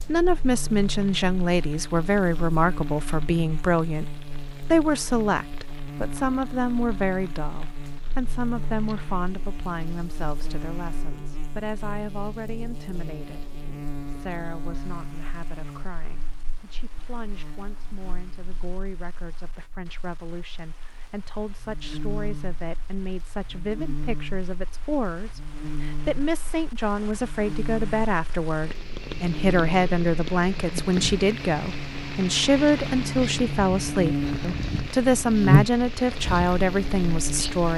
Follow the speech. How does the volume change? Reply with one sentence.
The volume of the speech goes down, then up.